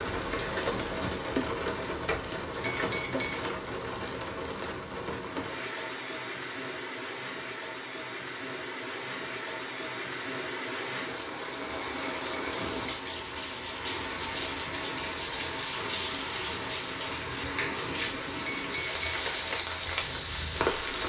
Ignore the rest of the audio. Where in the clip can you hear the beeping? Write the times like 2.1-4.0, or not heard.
2.6-3.5, 18.4-19.2.